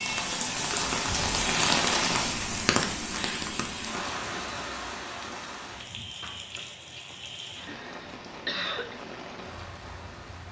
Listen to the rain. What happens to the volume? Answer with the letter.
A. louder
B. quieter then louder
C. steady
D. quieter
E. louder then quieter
D.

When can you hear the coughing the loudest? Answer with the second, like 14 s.
9 s.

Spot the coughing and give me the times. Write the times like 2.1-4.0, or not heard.
6.2-9.0.